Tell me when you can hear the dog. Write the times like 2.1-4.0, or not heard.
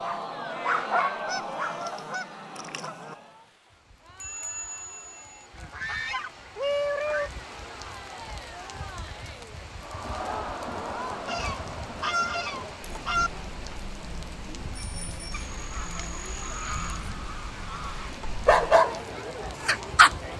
0.0-1.9, 18.4-19.0, 19.6-20.1.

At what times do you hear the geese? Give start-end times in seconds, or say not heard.
1.2-3.1, 5.5-7.3, 11.2-13.3, 15.3-18.2.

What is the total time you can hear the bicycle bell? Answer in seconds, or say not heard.
2 s.